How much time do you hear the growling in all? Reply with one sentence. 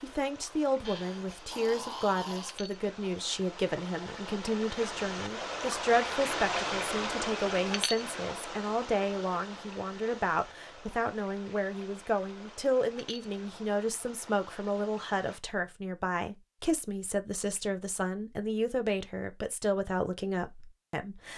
You can hear the growling for 2 seconds altogether.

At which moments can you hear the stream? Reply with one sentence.
You can hear the stream from 0.0 to 15.4 s.